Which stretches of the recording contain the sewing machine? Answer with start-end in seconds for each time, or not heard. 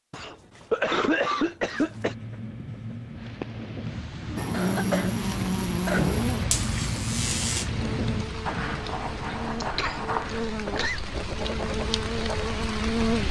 not heard.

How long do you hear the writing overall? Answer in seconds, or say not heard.
11 s.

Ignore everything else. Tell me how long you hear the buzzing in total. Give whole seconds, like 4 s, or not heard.
9 s.